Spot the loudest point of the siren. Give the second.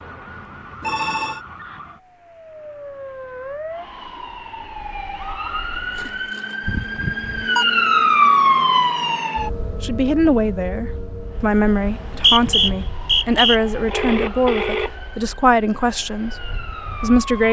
8 s.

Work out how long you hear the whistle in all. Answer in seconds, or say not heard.
2 s.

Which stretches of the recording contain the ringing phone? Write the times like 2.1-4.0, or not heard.
0.8-1.4, 6.6-7.7, 13.8-14.9.